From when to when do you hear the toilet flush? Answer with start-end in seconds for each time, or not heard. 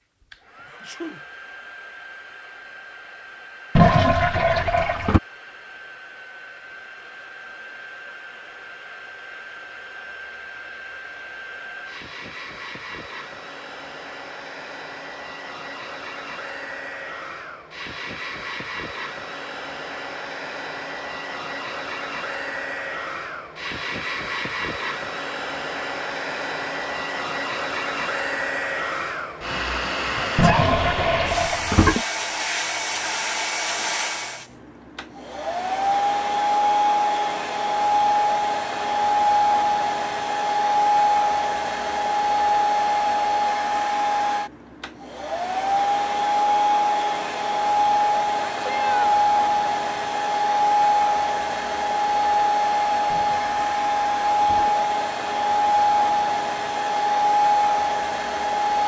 3.8-5.2, 30.4-32.0, 53.1-54.8.